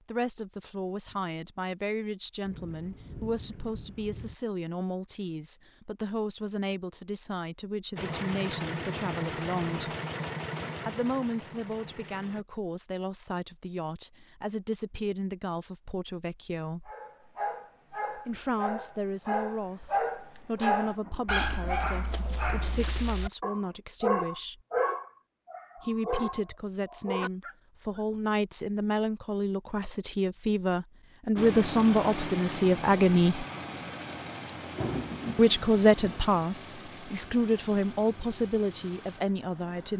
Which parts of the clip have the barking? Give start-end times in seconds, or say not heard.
16.9-28.0.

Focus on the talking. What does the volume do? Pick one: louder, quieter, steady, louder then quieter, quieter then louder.
louder.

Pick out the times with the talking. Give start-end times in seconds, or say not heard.
0.1-9.9, 10.8-16.9, 18.1-24.6, 25.8-33.5, 35.4-39.9.